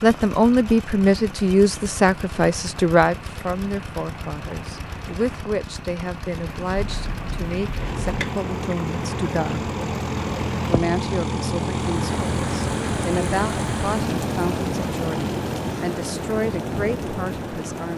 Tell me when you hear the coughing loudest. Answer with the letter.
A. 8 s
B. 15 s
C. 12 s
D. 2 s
A.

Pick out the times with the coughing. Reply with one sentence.
The coughing can be heard from 6.8 to 8.3 s.